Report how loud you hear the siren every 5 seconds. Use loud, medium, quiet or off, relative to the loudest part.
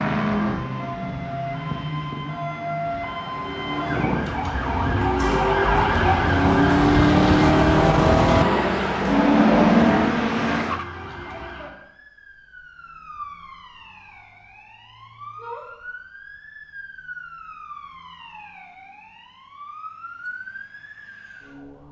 medium, loud, quiet, quiet, quiet.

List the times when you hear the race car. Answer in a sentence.
The race car can be heard from 0.0 to 10.8 s.